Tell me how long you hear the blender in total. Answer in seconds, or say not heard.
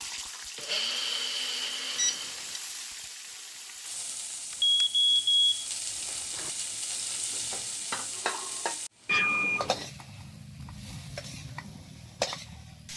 2 s.